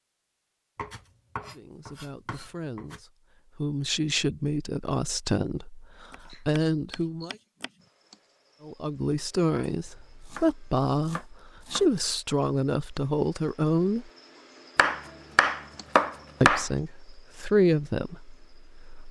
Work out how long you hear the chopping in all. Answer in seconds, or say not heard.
8 s.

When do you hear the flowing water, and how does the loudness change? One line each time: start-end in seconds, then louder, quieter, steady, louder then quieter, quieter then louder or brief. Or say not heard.
not heard.